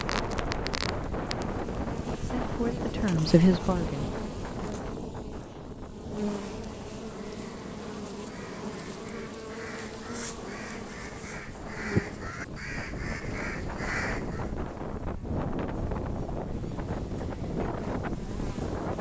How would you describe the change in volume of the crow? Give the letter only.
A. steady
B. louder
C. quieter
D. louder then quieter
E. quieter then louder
B.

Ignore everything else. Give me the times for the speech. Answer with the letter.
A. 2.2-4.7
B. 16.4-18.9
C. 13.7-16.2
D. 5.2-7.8
A.